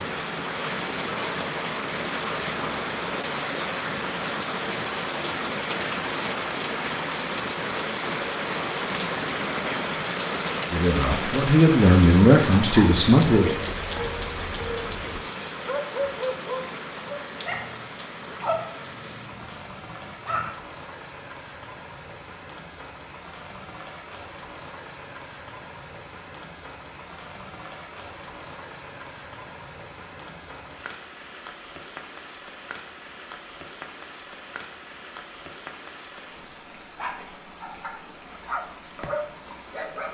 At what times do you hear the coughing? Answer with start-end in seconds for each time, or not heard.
not heard.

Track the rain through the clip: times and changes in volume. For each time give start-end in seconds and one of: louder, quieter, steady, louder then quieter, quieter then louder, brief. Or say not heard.
0.0-40.0 quieter.